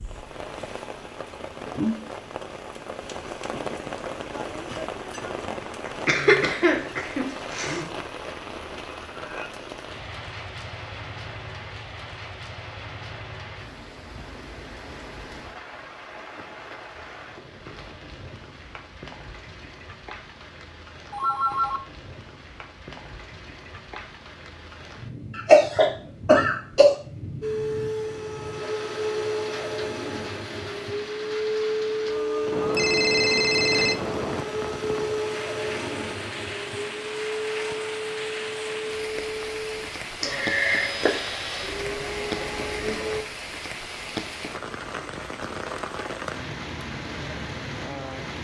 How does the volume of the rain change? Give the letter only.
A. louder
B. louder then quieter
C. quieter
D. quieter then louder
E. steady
D.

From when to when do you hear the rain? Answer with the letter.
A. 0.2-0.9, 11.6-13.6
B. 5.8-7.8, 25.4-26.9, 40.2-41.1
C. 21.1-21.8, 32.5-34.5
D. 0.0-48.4
D.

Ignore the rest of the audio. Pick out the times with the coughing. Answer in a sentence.
You can hear the coughing from 5.8 to 7.8 s, from 25.4 to 26.9 s and from 40.2 to 41.1 s.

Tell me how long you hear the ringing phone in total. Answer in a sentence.
The ringing phone can be heard for 3 seconds in total.